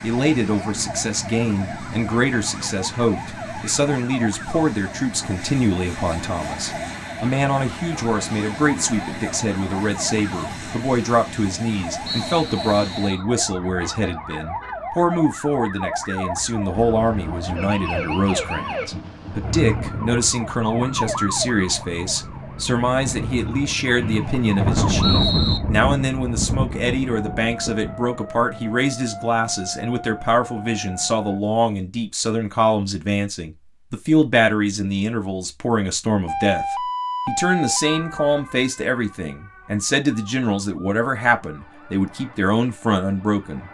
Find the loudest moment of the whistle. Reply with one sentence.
The volume of the whistle peaks at 25 seconds.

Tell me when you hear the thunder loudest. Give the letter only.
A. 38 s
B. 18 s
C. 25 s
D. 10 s
C.